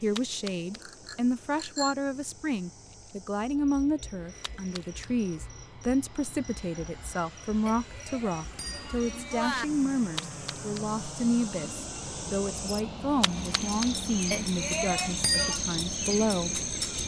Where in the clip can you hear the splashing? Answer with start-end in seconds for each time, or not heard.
0.1-0.8, 4.4-5.1, 10.2-10.8, 13.2-13.9.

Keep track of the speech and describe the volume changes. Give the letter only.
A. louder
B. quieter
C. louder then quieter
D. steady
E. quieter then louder
D.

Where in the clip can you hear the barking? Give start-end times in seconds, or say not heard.
not heard.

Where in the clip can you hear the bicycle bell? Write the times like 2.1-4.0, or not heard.
0.8-1.9, 7.7-9.7, 14.3-15.6.